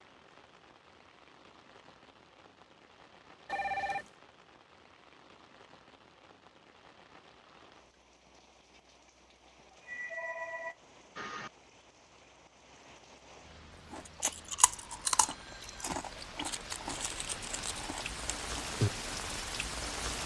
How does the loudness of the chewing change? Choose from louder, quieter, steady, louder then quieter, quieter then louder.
quieter.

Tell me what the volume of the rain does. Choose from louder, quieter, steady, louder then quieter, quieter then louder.
louder.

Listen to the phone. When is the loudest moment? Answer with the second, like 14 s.
4 s.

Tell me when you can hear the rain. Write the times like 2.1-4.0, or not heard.
0.0-20.2.